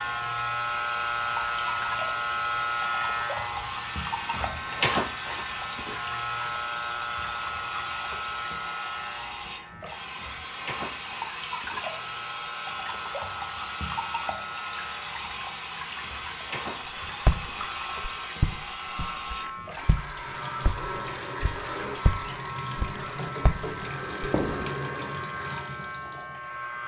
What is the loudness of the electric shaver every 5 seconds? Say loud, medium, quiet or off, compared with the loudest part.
loud, medium, medium, medium, medium, medium.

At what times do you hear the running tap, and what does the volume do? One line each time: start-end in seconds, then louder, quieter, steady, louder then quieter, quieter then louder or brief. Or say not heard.
0.0-26.8 steady.